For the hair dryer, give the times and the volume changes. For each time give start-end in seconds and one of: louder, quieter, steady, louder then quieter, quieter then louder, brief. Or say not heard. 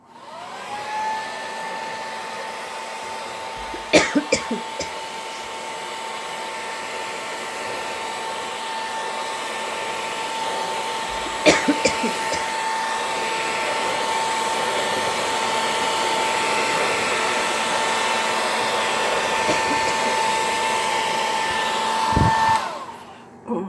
0.0-23.6 louder.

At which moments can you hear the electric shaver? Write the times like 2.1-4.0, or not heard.
not heard.